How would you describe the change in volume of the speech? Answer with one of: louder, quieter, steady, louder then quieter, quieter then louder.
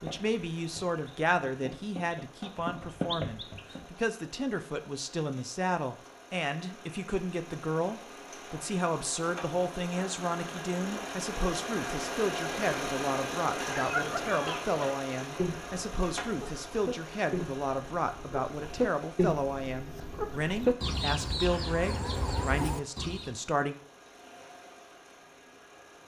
steady.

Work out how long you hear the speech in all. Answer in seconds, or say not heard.
24 s.